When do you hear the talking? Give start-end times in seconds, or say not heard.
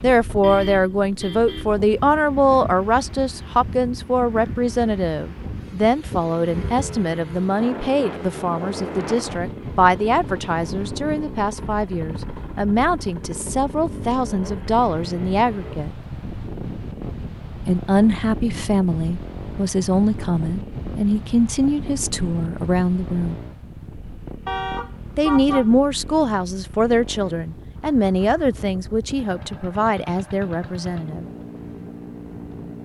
0.0-15.9, 17.6-23.4, 25.1-31.2.